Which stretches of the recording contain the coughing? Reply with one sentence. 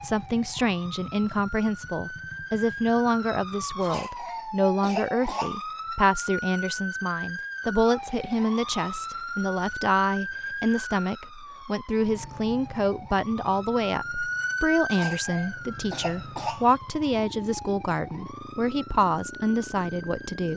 The coughing can be heard from 3.8 to 5.5 s and from 14.9 to 16.6 s.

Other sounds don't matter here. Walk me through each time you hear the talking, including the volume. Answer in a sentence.
The talking can be heard from 0.0 to 20.5 s, at a steady volume.